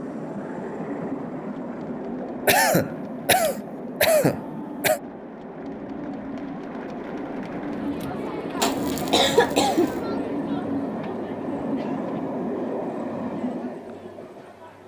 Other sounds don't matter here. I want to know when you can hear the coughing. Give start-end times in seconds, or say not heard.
2.5-5.0, 8.6-10.0.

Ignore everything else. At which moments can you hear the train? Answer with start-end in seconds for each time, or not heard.
0.0-14.8.